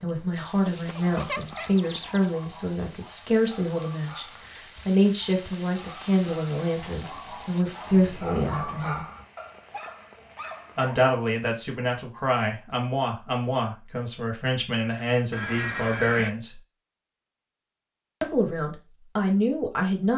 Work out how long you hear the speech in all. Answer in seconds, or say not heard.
17 s.